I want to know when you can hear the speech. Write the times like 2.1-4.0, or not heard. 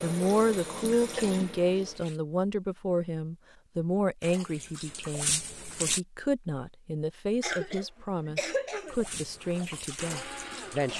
0.0-10.9.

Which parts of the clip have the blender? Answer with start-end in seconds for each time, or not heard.
9.3-10.9.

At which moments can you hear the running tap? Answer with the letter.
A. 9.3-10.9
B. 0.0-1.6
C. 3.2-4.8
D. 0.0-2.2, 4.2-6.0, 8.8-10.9
D.